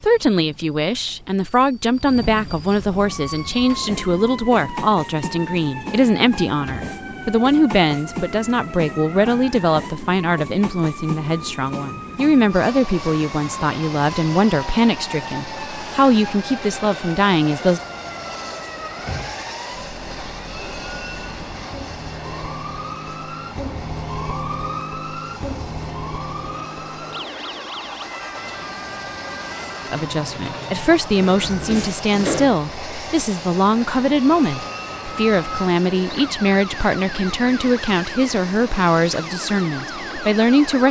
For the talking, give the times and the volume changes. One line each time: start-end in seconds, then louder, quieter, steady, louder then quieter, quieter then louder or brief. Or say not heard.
0.0-17.8 steady
29.9-40.8 steady.